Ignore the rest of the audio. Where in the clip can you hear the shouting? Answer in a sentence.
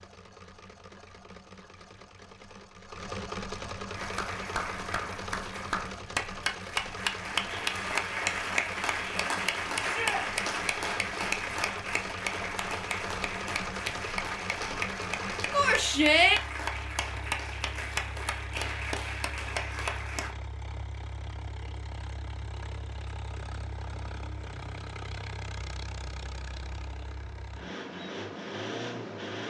The shouting can be heard from 9.8 to 10.2 s and from 15.5 to 16.4 s.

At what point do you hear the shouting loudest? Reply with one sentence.
The volume of the shouting peaks at 16 seconds.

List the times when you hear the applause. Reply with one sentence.
The applause can be heard from 3.9 to 20.4 s.